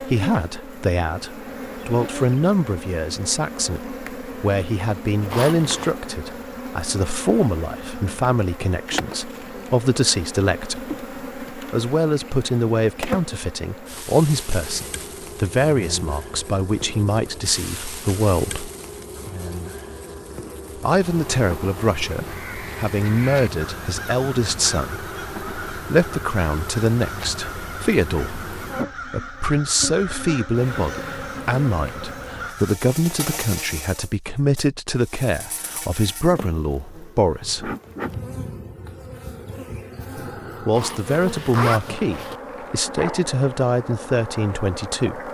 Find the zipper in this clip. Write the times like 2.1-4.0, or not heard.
5.3-6.0, 40.8-42.4.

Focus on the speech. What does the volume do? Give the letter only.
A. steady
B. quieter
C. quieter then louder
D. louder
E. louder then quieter
A.